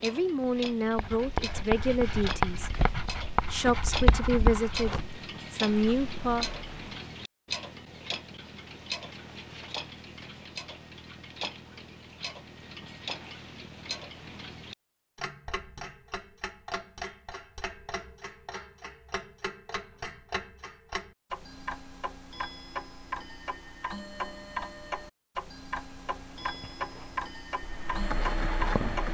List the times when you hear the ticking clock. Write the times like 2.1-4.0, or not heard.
0.0-29.0.